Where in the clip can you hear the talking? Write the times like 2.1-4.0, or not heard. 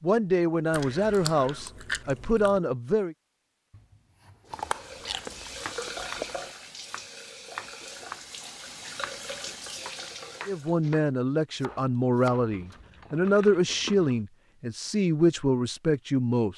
0.0-3.1, 10.4-16.5.